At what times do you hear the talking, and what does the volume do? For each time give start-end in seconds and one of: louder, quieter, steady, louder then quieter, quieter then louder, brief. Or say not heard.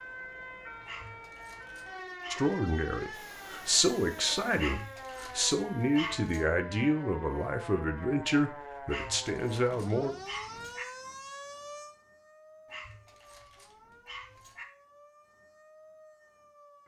2.3-10.1 steady.